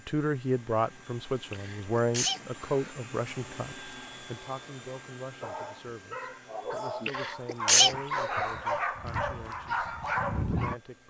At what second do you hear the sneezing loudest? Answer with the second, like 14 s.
8 s.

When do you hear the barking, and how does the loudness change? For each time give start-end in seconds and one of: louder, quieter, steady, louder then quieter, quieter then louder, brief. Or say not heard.
5.2-10.8 louder.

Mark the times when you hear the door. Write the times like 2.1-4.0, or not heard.
not heard.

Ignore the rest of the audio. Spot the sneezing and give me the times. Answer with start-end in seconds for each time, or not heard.
1.5-3.0, 7.0-8.6.